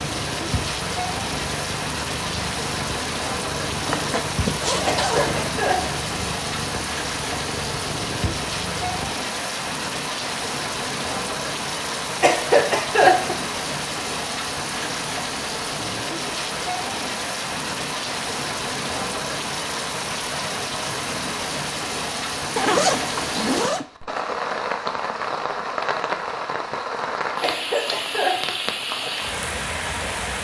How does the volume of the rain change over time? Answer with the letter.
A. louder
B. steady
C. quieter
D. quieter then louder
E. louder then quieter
B.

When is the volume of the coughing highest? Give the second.
13 s.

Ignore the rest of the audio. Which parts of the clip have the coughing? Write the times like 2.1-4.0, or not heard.
4.8-6.0, 12.2-13.4, 27.4-28.6.